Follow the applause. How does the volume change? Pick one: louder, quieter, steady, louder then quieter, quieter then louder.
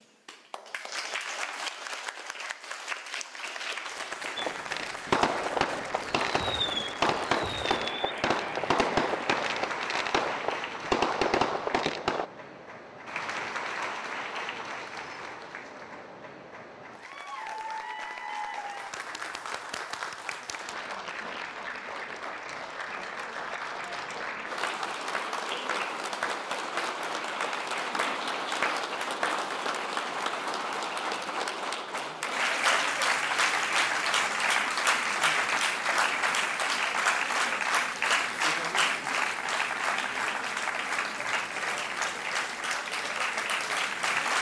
louder.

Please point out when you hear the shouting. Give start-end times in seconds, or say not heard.
not heard.